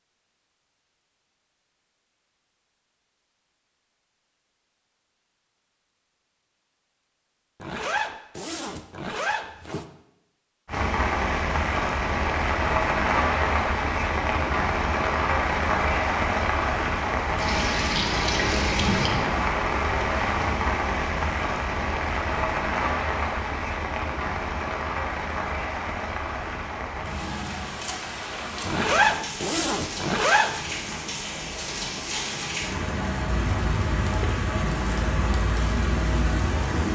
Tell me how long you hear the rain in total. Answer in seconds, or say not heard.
26 s.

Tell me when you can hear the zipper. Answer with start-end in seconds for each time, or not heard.
7.6-9.8, 18.3-19.6, 28.6-30.8.